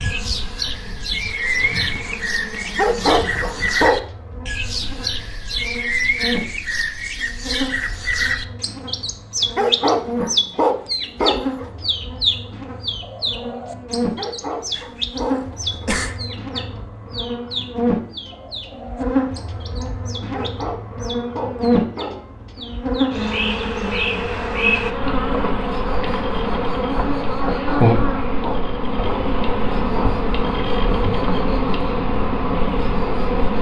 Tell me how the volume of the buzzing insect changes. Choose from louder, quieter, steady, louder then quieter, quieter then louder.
louder.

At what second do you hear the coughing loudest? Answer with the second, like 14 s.
16 s.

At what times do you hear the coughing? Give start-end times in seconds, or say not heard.
14.7-16.2.